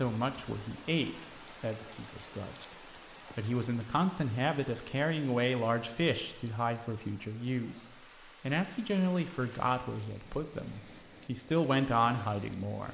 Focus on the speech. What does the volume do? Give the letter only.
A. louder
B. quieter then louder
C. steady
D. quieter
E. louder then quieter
A.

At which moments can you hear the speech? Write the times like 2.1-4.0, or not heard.
0.0-12.8.